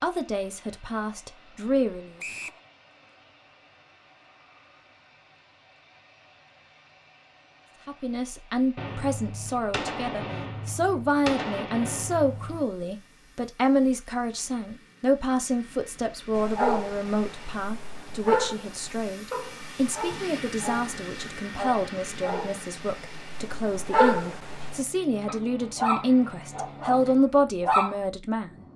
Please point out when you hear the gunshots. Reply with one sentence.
You can hear the gunshots from 8.8 to 12.7 s.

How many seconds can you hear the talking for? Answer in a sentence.
The talking can be heard for 23 seconds in total.